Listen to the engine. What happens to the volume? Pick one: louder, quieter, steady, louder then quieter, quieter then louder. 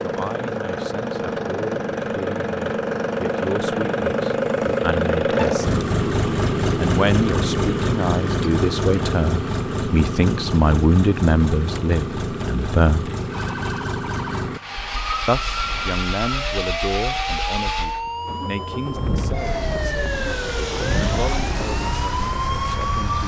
quieter.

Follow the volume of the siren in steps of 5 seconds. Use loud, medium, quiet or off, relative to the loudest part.
off, off, medium, loud, loud.